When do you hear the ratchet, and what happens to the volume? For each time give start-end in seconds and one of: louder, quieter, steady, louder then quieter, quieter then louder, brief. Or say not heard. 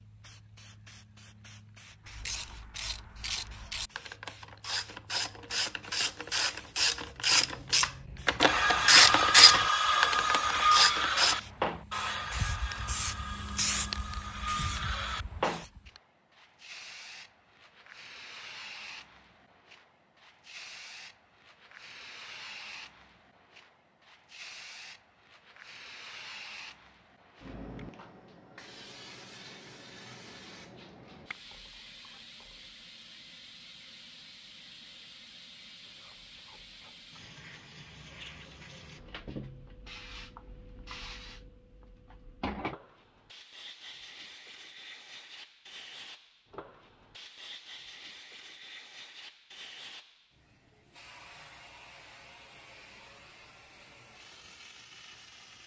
2.0-11.3 louder.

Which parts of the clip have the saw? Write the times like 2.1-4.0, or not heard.
8.4-15.7.